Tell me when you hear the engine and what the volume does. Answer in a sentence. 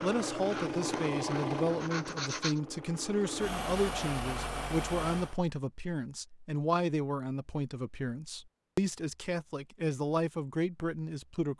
The engine can be heard from 0.0 to 5.4 s, getting quieter then louder.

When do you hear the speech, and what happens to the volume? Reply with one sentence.
The speech can be heard from 0.0 to 11.5 s, at a steady volume.